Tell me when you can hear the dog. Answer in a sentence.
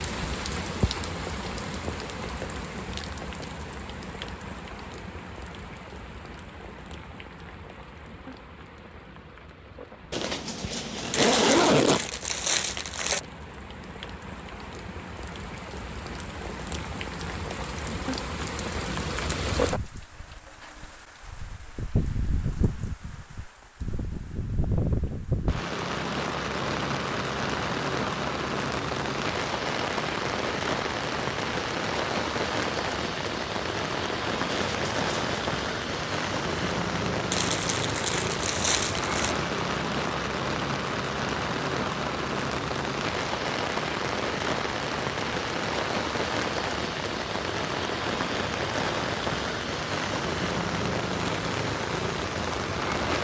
You can't hear the dog here.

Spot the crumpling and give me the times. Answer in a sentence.
You can hear the crumpling from 11.1 to 13.2 s and from 37.3 to 39.4 s.